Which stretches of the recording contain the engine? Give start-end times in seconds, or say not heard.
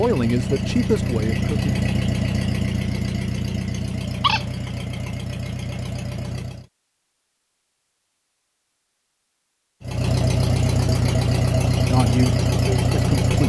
0.0-6.7, 9.8-13.4.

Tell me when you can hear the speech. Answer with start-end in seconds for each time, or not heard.
0.0-1.8, 11.8-13.4.